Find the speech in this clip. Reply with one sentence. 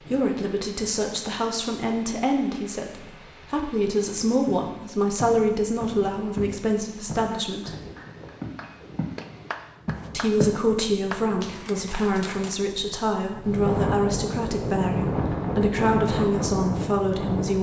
The speech can be heard from 0.1 to 7.7 s and from 10.1 to 17.5 s.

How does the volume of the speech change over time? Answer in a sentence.
The loudness of the speech stays about the same.